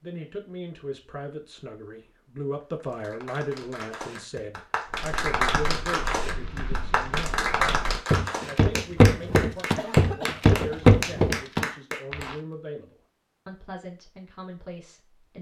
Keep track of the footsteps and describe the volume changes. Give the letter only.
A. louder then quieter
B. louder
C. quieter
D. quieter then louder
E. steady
B.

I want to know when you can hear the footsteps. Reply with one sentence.
The footsteps can be heard from 5.2 to 12.3 s.